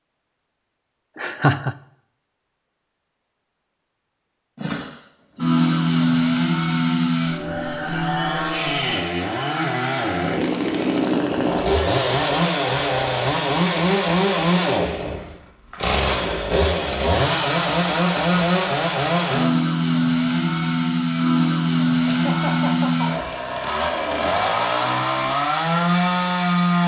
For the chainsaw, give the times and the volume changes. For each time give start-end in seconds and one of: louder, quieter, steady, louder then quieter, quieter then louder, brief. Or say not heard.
4.5-26.8 steady.